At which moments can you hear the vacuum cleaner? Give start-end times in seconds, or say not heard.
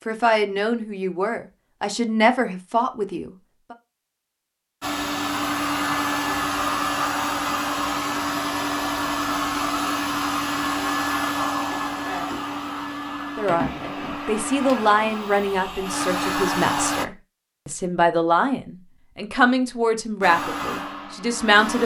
4.8-17.1, 20.2-21.8.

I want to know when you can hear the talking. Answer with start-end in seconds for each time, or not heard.
0.1-3.8, 13.3-21.8.